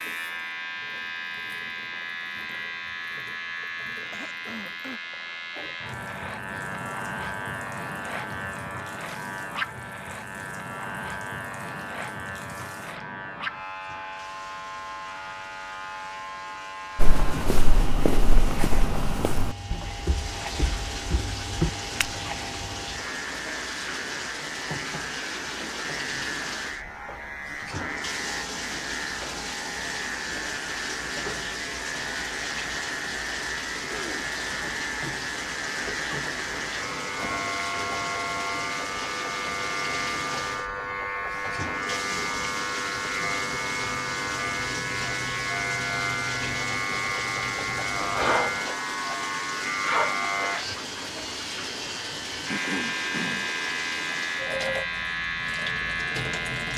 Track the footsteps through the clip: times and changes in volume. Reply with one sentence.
The footsteps can be heard from 16.9 to 22.2 s, getting quieter then louder.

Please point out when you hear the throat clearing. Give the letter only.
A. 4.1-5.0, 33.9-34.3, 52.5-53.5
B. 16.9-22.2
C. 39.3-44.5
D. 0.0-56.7
A.